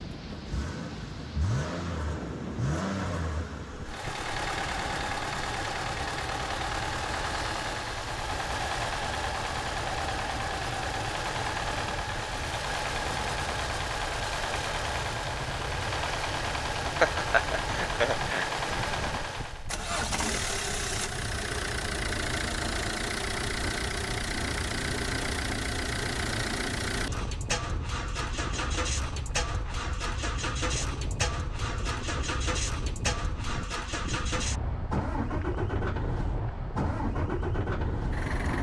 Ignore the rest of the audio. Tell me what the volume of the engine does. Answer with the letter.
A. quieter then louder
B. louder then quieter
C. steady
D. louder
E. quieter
C.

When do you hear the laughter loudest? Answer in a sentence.
The loudest moment of the laughter is at 17 seconds.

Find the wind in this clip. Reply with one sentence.
The wind can be heard from 0.0 to 38.5 s.